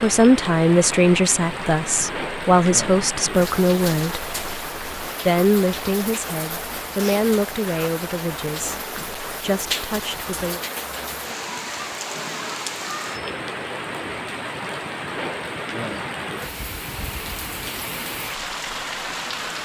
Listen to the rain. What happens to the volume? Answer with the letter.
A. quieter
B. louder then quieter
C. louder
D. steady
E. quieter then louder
D.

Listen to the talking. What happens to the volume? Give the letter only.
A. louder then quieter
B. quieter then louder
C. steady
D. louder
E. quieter
E.